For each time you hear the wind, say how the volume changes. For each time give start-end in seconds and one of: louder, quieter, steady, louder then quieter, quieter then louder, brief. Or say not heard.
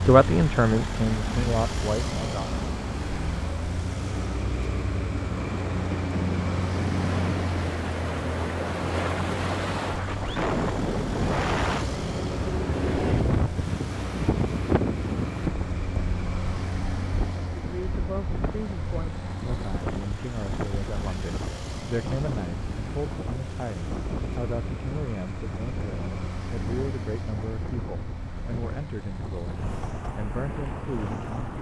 5.2-31.5 quieter.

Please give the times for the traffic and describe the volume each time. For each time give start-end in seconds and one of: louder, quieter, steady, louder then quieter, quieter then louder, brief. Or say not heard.
0.0-31.5 quieter.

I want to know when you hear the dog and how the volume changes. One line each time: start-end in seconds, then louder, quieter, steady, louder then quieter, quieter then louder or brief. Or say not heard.
not heard.